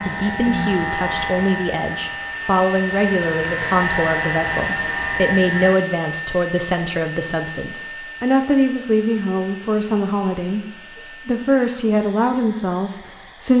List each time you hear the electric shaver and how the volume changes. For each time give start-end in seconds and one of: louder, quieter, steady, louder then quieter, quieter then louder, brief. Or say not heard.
0.0-5.8 quieter then louder.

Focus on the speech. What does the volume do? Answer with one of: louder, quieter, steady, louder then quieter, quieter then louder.
steady.